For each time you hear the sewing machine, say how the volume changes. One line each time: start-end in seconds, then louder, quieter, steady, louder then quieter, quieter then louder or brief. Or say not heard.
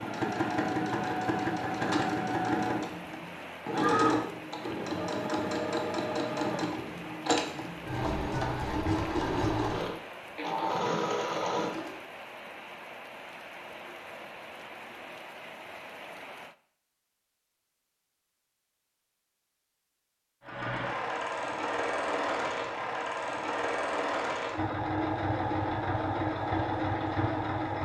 0.0-12.0 steady
20.4-27.8 steady.